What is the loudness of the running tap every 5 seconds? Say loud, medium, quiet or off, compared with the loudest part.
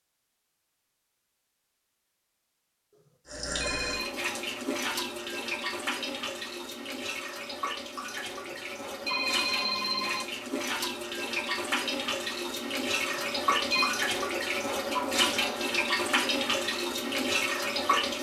medium, medium, loud, loud.